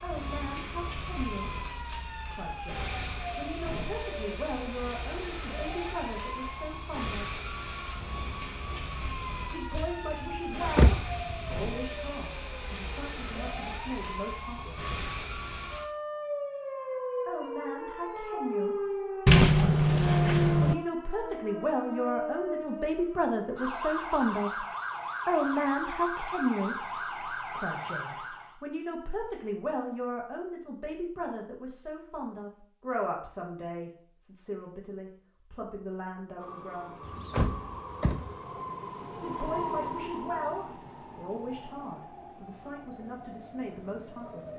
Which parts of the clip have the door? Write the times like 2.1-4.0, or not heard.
9.8-11.7, 19.2-20.8, 37.0-38.4.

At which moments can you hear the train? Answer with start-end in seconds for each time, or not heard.
36.4-44.5.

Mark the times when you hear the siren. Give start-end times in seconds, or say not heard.
0.0-28.6.